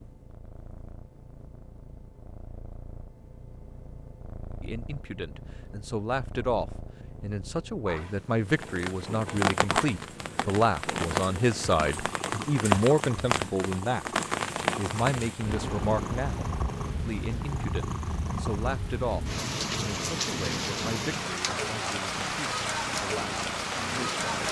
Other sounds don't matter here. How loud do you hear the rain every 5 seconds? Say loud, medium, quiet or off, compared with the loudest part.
off, loud, loud, medium, loud.